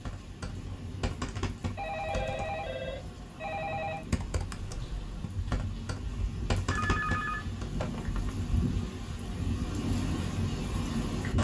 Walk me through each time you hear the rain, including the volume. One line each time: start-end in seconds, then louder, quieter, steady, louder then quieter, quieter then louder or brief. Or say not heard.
0.0-11.3 louder.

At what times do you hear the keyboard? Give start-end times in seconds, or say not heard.
0.0-2.6, 4.1-7.8.